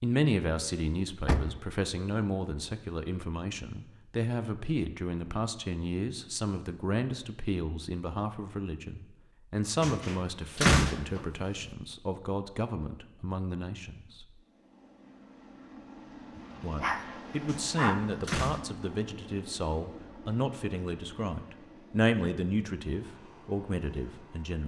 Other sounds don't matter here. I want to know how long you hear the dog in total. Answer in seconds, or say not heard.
2 s.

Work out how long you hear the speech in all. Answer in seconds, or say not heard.
22 s.